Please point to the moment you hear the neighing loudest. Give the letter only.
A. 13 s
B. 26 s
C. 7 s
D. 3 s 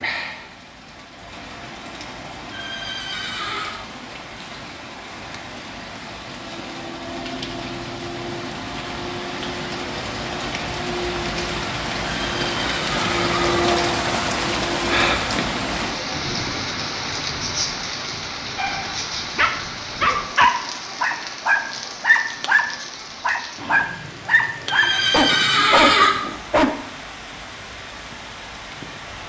B.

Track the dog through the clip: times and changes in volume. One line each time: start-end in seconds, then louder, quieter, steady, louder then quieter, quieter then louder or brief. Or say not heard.
18.6-26.8 steady.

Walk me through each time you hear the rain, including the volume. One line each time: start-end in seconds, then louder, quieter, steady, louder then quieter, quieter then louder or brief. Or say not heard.
0.0-29.2 louder then quieter.